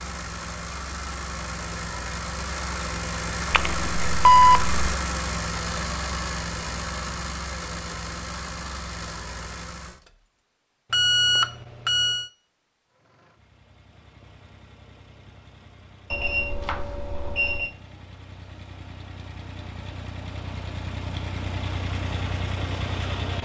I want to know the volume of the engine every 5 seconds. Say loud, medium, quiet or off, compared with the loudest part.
loud, loud, quiet, quiet, loud.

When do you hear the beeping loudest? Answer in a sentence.
The volume of the beeping peaks at 4 seconds.